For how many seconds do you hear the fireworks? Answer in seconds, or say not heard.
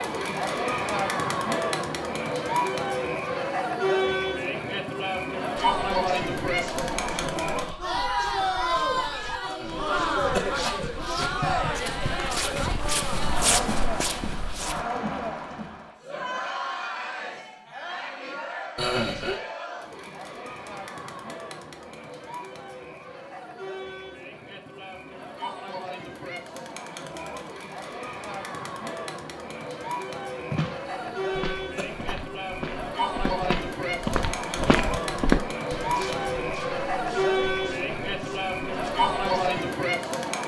not heard.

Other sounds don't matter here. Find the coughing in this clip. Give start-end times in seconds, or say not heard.
9.4-10.8, 18.8-19.4, 30.9-32.2.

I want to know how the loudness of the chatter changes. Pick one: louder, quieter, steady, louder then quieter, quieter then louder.
quieter then louder.